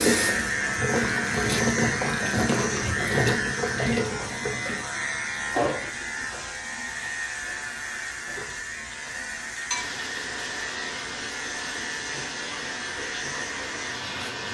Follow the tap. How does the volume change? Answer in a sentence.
The loudness of the tap goes down, then up.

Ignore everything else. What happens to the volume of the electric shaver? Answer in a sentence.
The loudness of the electric shaver goes down.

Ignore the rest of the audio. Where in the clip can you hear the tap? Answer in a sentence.
You can hear the tap from 0.0 to 14.4 s.